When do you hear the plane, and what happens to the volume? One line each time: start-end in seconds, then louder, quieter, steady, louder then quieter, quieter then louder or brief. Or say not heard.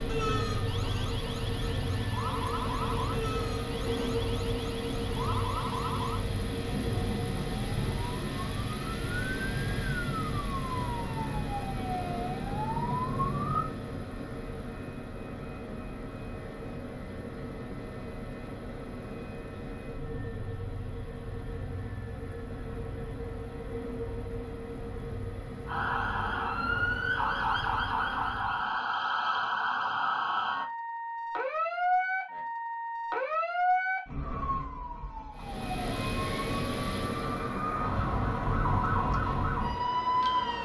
0.0-28.8 quieter
35.4-40.6 quieter.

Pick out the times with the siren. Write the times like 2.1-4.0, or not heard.
0.0-13.7, 25.6-40.6.